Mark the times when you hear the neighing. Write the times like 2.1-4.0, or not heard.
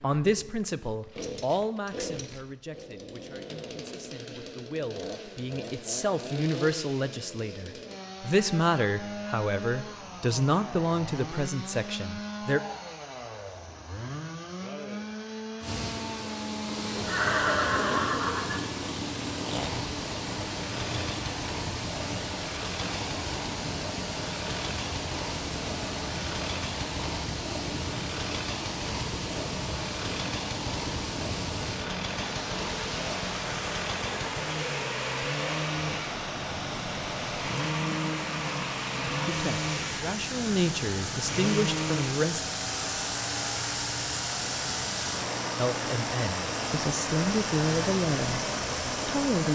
16.9-18.6.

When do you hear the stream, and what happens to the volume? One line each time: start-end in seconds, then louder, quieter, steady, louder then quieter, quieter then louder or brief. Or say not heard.
15.6-49.5 steady.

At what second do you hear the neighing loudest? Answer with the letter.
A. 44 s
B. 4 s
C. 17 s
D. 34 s
C.